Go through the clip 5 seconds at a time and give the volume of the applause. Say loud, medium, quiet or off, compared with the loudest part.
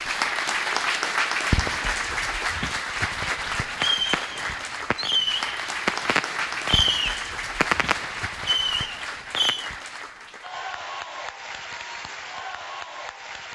loud, medium, medium.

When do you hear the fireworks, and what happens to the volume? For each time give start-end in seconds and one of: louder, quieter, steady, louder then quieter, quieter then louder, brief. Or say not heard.
3.8-9.7 steady.